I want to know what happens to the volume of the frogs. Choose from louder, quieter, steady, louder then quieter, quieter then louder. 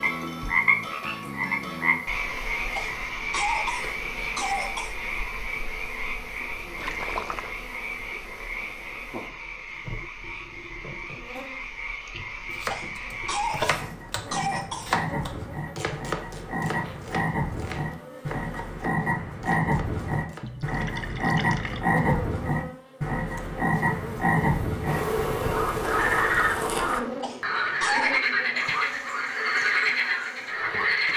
quieter then louder.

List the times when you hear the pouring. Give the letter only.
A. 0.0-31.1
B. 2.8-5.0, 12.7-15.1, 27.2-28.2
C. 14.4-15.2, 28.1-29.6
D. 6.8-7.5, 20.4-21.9
D.